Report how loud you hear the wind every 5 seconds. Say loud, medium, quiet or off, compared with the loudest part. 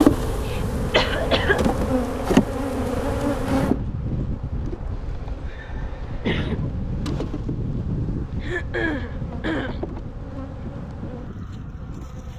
loud, loud, medium.